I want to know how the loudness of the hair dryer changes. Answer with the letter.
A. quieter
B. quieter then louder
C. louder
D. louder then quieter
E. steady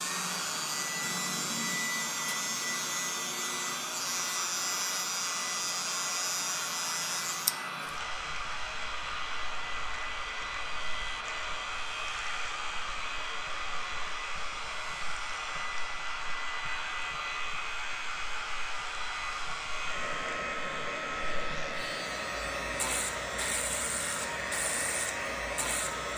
E.